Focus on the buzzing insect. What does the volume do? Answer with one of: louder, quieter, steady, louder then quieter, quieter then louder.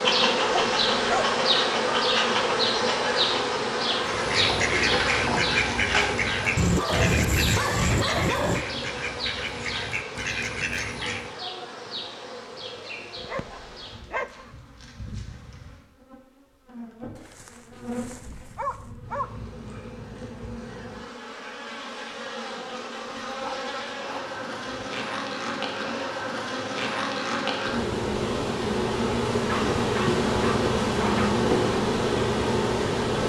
quieter then louder.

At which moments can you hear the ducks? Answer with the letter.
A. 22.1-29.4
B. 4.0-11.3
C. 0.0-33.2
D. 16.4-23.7
B.